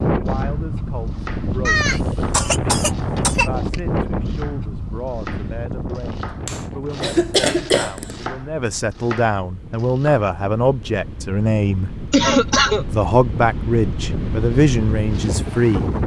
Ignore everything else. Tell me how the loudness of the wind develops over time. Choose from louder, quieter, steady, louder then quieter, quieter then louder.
quieter then louder.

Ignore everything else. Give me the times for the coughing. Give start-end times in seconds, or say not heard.
1.6-3.5, 6.5-8.2, 12.1-12.8.